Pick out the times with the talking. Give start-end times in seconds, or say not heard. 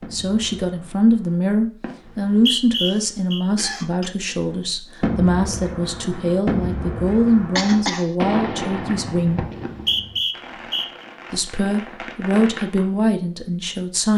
0.0-9.4, 11.3-14.1.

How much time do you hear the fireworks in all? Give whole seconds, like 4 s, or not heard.
11 s.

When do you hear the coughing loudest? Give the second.
8 s.